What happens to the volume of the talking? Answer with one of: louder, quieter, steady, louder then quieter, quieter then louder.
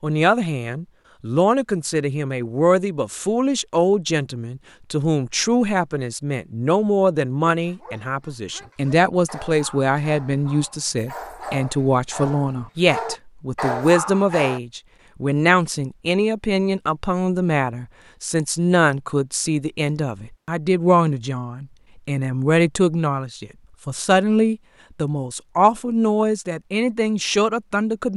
steady.